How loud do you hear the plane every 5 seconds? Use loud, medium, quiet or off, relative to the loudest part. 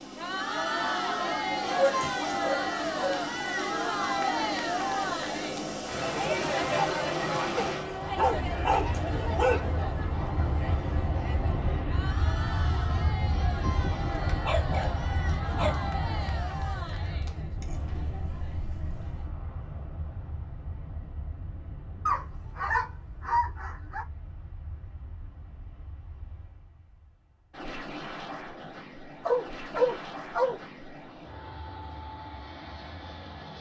loud, loud, loud, medium, quiet, medium, medium.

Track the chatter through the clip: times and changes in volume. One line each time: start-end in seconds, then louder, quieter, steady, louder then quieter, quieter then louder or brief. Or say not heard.
0.0-19.4 quieter.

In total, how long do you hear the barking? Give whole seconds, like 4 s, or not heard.
10 s.